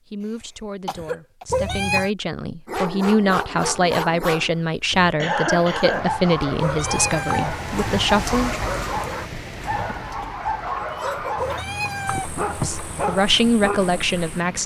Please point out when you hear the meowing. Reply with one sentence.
The meowing can be heard from 1.5 to 2.1 s, from 6.5 to 7.6 s and from 11.3 to 13.2 s.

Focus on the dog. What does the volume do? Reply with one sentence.
The loudness of the dog stays about the same.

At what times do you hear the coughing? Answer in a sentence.
You can hear the coughing from 0.2 to 1.4 s, from 5.2 to 6.3 s and from 10.0 to 11.6 s.